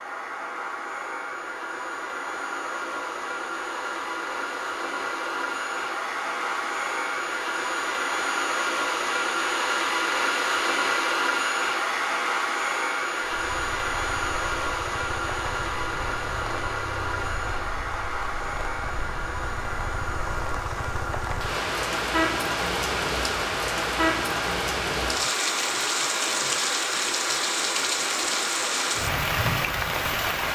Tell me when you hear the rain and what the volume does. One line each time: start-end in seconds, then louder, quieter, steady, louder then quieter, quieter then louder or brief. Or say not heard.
13.2-30.4 louder.